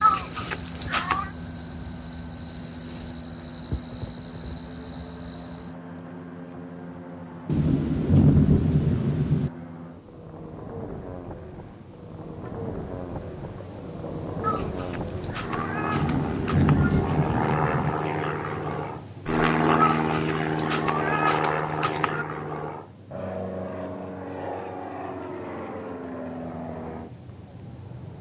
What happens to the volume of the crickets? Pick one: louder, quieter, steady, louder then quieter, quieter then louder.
louder then quieter.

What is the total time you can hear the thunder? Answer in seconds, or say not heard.
4 s.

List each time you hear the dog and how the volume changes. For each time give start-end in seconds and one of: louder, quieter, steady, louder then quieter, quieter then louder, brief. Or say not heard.
not heard.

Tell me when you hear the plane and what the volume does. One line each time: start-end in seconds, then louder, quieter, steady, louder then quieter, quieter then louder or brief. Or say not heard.
0.0-28.1 louder then quieter.